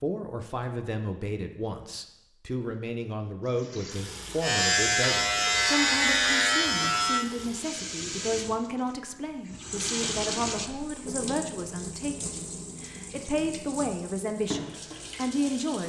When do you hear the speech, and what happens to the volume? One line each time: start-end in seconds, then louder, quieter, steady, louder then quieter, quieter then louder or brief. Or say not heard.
0.0-15.8 steady.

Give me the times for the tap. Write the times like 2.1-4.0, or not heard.
3.5-15.8.